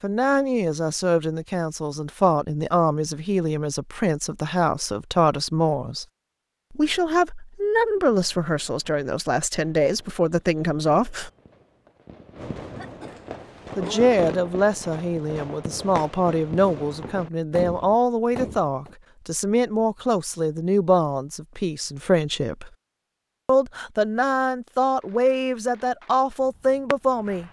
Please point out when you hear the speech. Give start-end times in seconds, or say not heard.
0.0-6.0, 6.7-11.3, 13.8-22.7, 23.4-27.4.